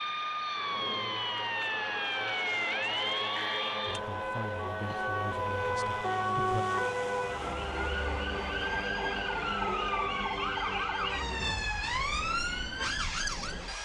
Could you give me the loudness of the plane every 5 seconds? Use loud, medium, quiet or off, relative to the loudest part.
loud, loud, medium.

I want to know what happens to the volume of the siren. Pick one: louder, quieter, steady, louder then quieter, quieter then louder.
steady.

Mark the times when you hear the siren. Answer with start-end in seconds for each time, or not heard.
0.0-13.8.